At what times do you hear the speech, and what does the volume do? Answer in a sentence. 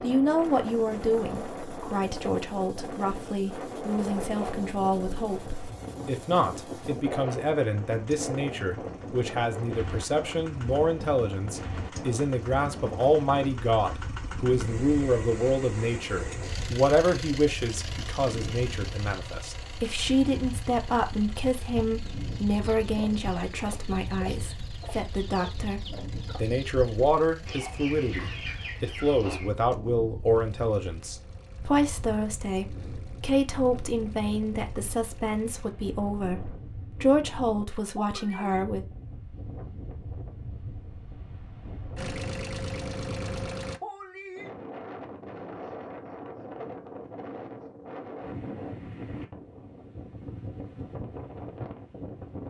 The speech can be heard from 0.0 to 38.9 s, at a steady volume.